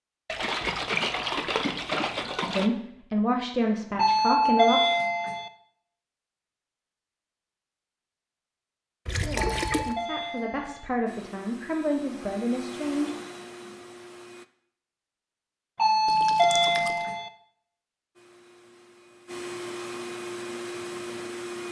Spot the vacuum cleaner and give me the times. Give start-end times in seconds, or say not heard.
11.1-14.4, 18.1-21.6.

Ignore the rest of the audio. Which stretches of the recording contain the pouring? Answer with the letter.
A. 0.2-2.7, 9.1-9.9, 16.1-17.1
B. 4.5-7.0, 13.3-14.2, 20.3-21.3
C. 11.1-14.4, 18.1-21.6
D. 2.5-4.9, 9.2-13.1
A.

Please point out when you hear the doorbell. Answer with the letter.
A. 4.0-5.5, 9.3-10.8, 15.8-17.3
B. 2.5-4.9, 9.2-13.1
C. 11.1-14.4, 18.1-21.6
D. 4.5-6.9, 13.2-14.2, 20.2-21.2
A.